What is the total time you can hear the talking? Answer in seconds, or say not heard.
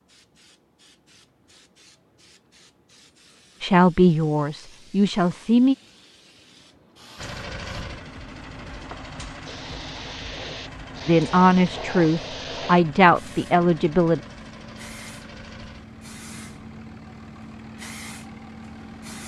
5 s.